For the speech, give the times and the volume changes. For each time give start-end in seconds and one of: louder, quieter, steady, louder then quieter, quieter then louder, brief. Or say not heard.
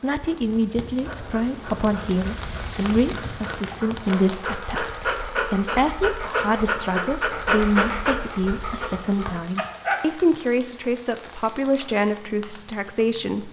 0.0-13.4 steady.